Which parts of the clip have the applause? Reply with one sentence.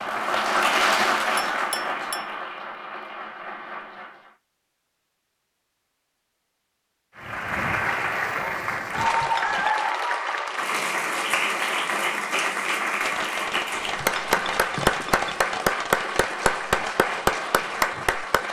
The applause can be heard from 0.0 to 4.3 s and from 7.2 to 18.4 s.